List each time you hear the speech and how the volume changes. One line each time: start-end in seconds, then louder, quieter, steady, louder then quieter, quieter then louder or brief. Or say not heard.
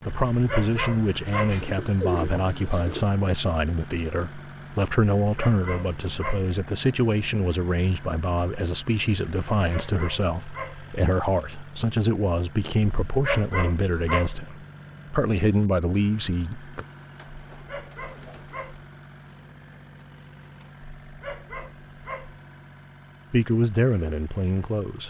0.1-16.9 steady
23.3-25.0 brief.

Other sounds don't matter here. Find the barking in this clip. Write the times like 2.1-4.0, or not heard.
0.1-1.6, 5.2-6.5, 9.6-10.9, 12.8-14.4, 17.5-18.9, 20.8-22.4.